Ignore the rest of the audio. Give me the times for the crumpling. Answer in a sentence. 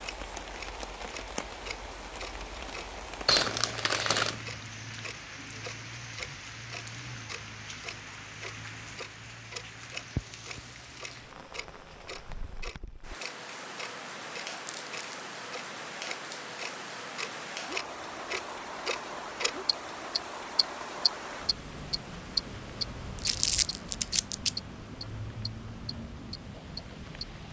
The crumpling can be heard from 3.2 to 4.4 s, from 14.5 to 15.2 s and from 23.2 to 24.5 s.